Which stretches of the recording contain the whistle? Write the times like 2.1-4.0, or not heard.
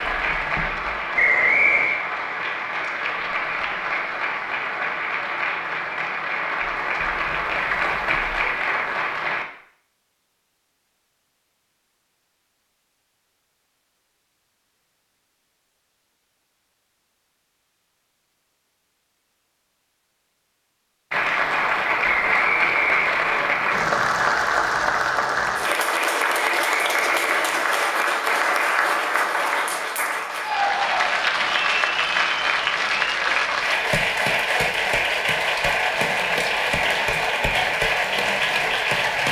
1.1-2.0, 22.0-23.6, 26.4-27.9.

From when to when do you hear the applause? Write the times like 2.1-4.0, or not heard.
0.0-9.4, 21.1-39.2.